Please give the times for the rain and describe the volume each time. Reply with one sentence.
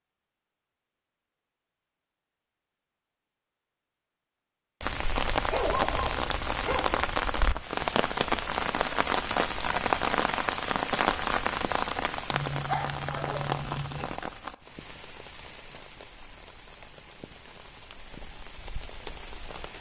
The rain can be heard from 4.8 to 19.7 s, getting quieter.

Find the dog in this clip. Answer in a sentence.
The dog can be heard from 5.5 to 7.0 s and from 12.3 to 14.1 s.